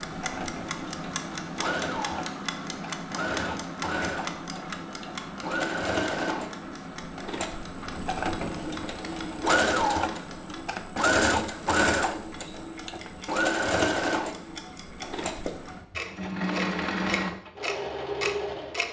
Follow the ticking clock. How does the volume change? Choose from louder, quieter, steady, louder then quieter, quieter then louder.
quieter then louder.